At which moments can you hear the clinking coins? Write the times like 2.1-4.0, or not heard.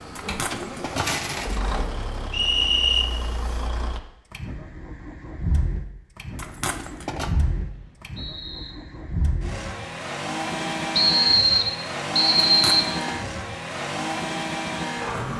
0.1-1.6, 6.3-7.3, 12.4-12.9.